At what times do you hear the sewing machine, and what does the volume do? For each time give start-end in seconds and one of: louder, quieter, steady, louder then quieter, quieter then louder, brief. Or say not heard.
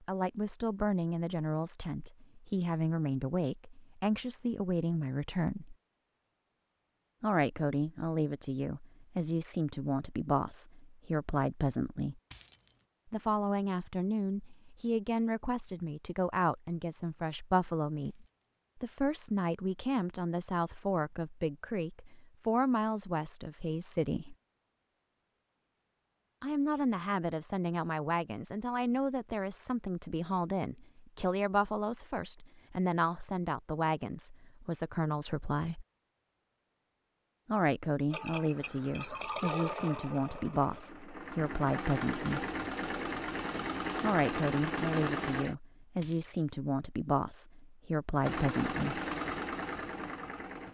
38.1-45.5 quieter then louder
48.2-50.6 brief.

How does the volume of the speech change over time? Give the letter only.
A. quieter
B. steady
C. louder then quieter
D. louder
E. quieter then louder
B.